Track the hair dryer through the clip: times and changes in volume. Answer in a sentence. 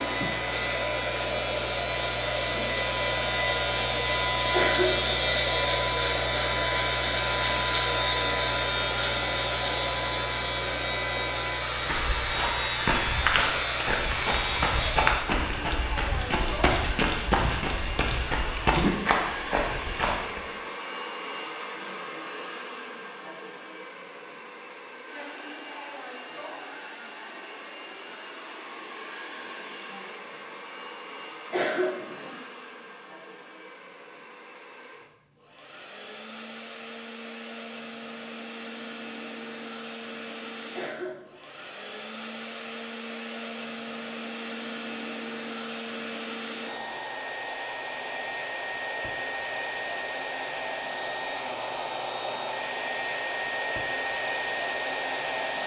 The hair dryer can be heard from 0.0 to 55.6 s, getting quieter then louder.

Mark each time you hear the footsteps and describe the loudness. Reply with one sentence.
You can hear the footsteps from 11.8 to 20.4 s, at a steady volume.